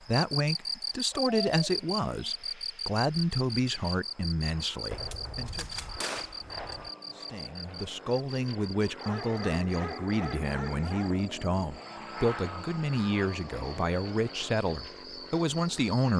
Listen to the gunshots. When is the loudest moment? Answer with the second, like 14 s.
6 s.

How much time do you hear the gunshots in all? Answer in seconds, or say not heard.
2 s.